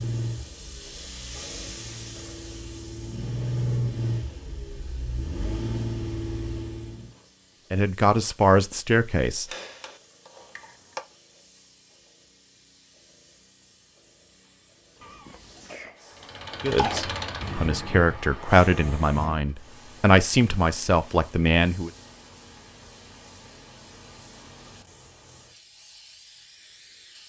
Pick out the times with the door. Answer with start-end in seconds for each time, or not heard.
not heard.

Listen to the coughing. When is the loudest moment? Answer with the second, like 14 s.
17 s.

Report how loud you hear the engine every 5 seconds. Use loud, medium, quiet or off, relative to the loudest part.
loud, loud, off, loud, off, off.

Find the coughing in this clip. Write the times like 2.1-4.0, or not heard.
15.0-17.0.